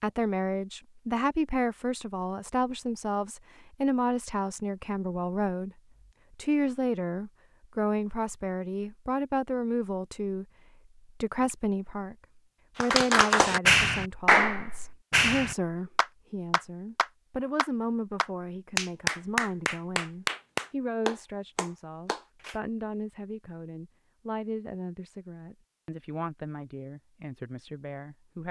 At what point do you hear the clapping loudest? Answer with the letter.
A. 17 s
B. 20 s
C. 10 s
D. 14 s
D.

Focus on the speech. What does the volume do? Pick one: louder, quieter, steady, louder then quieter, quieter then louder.
quieter.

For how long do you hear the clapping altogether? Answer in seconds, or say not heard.
10 s.